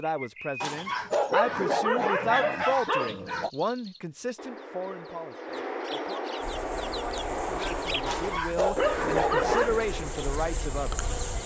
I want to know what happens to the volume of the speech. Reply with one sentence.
The loudness of the speech goes down, then up.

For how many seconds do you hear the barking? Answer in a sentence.
You can hear the barking for 5 seconds altogether.